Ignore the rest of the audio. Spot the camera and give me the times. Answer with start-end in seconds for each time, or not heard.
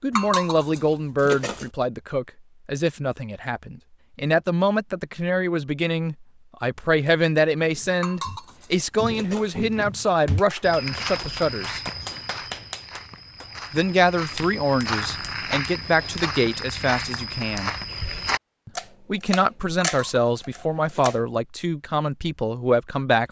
18.8-21.2.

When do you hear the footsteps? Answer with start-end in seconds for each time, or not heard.
7.6-18.4.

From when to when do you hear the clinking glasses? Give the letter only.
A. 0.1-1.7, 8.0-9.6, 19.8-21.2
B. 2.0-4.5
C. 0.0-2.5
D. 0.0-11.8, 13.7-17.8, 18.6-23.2
A.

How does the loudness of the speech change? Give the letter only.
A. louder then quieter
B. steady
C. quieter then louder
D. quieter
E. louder
B.